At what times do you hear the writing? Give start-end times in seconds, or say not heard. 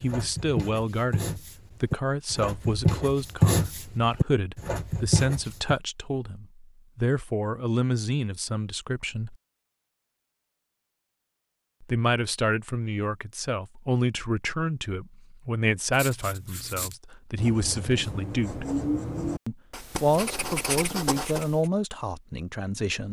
0.0-5.8, 15.9-21.6.